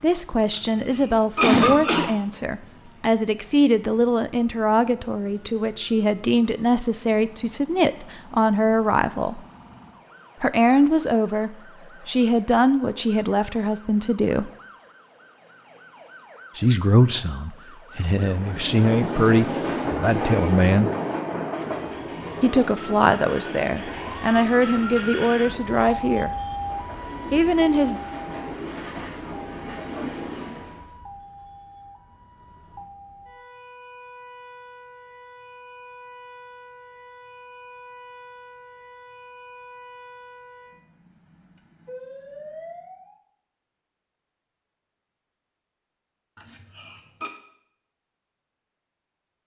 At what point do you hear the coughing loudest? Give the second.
2 s.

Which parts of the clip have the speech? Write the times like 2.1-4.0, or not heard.
0.0-9.4, 10.4-14.5, 16.6-20.9, 22.4-26.3, 27.3-28.0.